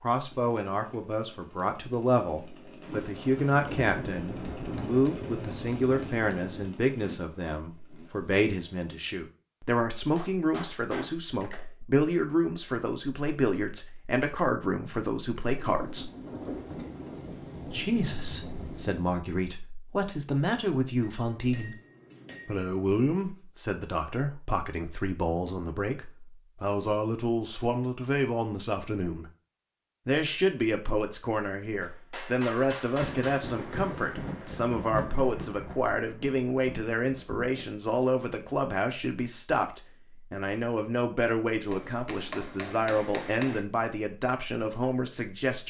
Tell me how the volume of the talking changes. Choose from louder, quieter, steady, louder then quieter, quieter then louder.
steady.